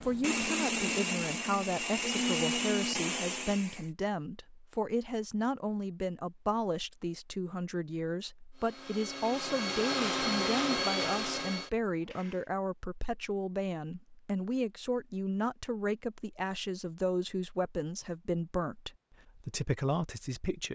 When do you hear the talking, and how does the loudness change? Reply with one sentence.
You can hear the talking from 0.0 to 20.7 s, at a steady volume.